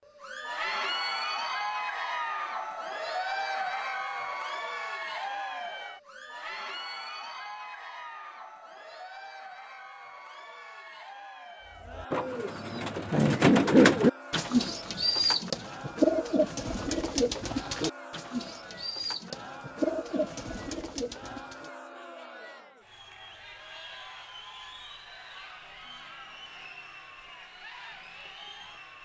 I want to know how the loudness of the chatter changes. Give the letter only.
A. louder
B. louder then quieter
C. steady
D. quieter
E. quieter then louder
D.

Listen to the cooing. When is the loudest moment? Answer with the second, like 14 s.
14 s.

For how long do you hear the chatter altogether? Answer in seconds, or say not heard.
29 s.